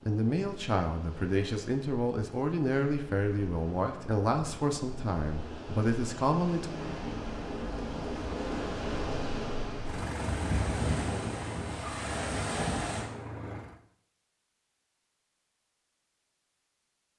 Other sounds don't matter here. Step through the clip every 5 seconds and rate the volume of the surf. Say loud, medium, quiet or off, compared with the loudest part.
quiet, loud, loud, off.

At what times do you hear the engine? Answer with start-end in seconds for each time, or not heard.
6.6-13.8.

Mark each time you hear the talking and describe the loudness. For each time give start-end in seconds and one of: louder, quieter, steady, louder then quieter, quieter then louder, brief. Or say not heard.
0.0-6.7 steady.